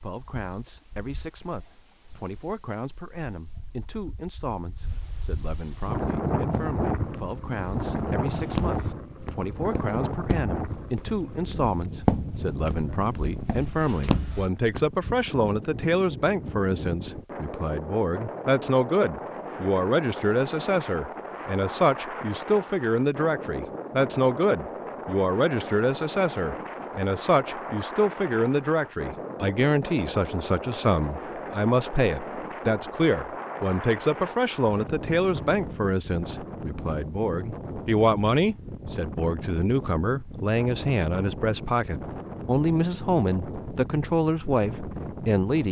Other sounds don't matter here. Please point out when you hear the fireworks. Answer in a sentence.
The fireworks can't be heard in this clip.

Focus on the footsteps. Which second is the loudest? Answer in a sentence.
The volume of the footsteps peaks at 12 seconds.